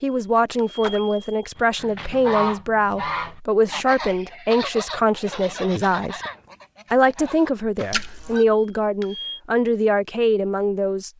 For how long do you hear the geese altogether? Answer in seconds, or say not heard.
7 s.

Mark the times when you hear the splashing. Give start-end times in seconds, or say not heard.
0.8-1.4, 7.9-8.3.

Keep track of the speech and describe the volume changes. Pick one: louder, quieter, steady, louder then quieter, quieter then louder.
steady.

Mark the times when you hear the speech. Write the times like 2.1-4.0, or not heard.
0.0-6.2, 6.9-11.1.